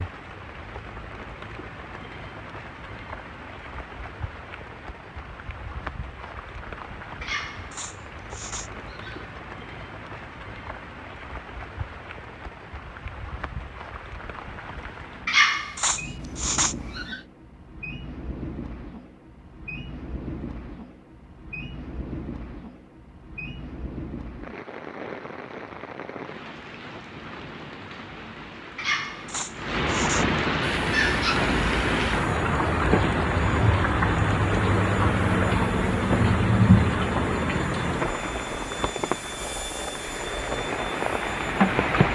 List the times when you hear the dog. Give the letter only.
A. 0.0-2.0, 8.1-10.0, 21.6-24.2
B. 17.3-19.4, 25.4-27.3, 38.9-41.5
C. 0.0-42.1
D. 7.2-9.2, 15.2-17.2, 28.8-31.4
D.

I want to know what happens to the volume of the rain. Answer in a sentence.
The volume of the rain goes up.